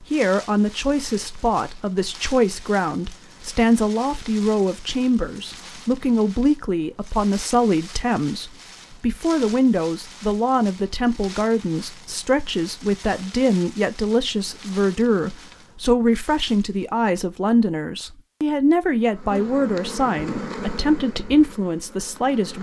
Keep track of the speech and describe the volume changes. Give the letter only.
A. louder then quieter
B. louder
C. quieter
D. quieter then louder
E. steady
E.